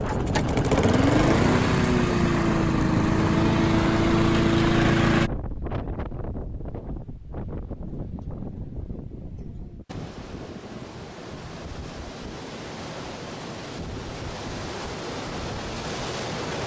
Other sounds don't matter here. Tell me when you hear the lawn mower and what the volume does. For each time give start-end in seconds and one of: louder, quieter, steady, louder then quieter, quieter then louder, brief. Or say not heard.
0.0-5.3 steady.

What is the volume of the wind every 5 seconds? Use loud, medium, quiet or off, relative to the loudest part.
loud, medium, medium, loud.